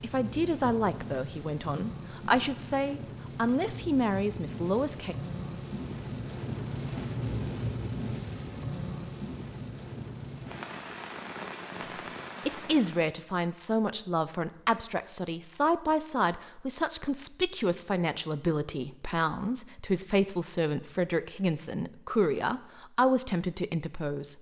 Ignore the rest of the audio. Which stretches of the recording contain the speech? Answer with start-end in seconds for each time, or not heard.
0.0-5.2, 11.8-24.3.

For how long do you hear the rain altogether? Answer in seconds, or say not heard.
13 s.